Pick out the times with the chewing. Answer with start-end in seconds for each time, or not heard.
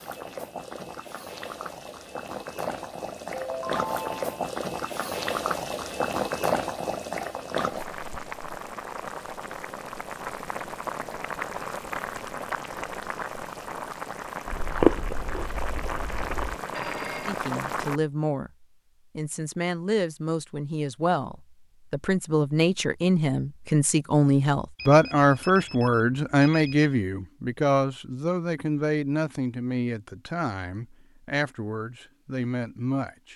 14.4-16.6.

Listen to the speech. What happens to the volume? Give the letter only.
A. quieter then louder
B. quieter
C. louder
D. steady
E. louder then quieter
E.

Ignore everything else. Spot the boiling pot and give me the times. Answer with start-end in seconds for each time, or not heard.
0.0-18.0.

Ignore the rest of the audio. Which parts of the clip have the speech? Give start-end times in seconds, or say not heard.
17.2-33.3.